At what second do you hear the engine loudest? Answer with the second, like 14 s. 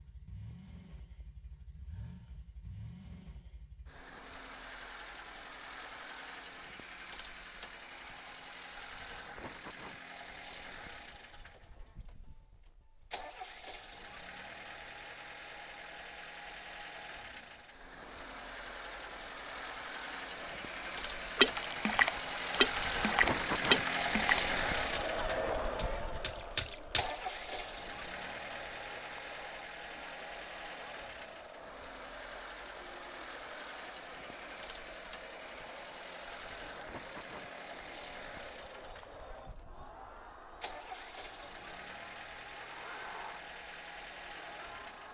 24 s.